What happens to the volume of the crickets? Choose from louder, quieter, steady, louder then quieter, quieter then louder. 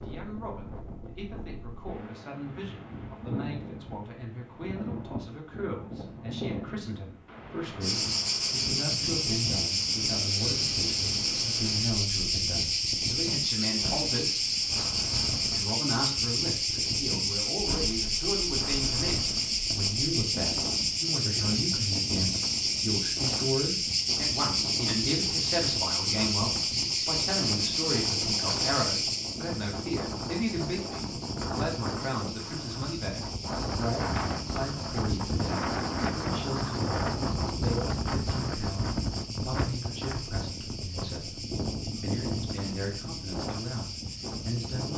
quieter.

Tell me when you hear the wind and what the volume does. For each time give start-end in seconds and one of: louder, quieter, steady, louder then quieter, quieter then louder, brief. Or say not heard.
0.0-44.9 louder.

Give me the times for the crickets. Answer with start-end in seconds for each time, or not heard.
7.8-44.9.